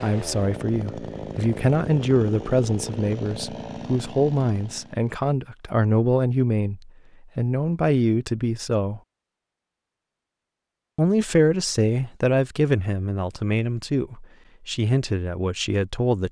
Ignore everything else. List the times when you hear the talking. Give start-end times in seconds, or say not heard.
0.0-9.0, 10.9-16.2.